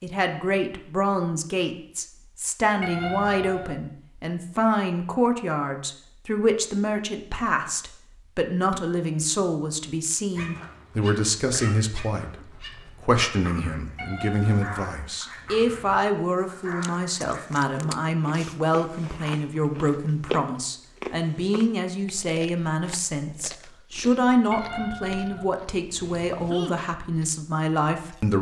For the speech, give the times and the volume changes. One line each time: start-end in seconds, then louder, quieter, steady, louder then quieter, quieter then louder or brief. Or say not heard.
0.0-28.3 steady.